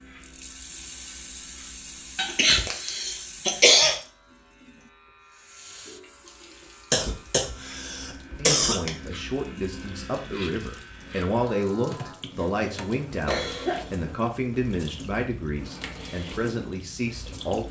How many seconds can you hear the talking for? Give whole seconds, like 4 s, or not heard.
9 s.